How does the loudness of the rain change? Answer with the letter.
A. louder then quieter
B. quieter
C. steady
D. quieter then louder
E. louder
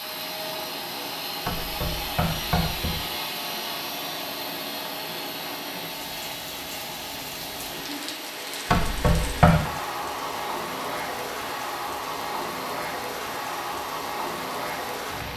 E.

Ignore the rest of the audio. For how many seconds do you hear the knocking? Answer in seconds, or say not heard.
2 s.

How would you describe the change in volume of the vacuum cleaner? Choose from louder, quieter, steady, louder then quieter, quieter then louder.
quieter.